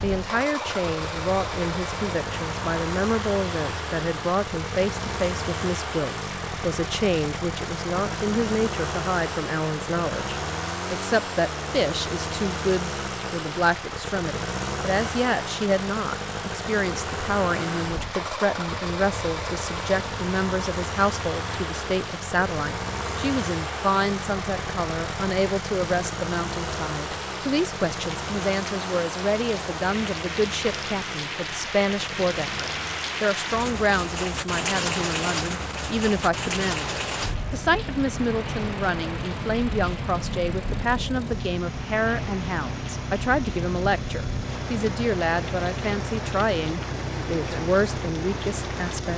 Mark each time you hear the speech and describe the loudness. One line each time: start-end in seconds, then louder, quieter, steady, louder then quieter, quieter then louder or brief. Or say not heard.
0.0-49.1 steady.